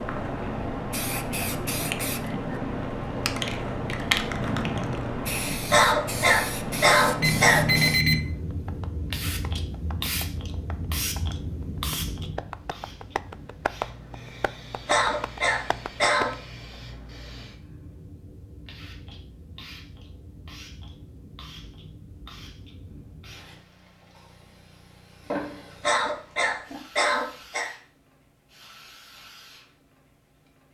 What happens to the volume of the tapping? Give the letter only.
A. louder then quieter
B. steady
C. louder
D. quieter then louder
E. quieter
C.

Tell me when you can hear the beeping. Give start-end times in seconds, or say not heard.
7.2-8.3.